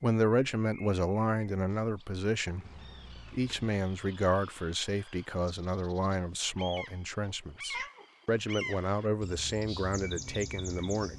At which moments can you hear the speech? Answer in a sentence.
You can hear the speech from 0.0 to 2.6 s and from 3.3 to 11.1 s.